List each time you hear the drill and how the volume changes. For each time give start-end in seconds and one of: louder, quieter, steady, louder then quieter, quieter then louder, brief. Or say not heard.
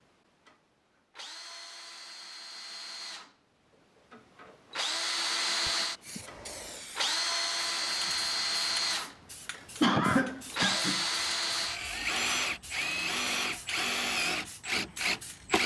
0.0-15.6 louder.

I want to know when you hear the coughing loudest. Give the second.
10 s.